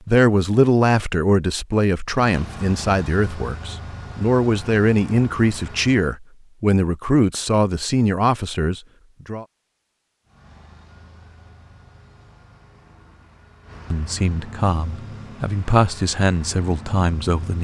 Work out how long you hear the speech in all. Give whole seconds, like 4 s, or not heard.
13 s.